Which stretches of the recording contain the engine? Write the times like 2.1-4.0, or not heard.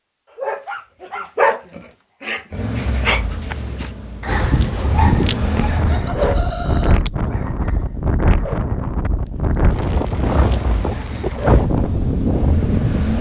2.5-6.0, 10.2-13.1.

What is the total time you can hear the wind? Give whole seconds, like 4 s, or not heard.
9 s.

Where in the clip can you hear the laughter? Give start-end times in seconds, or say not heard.
5.8-7.0.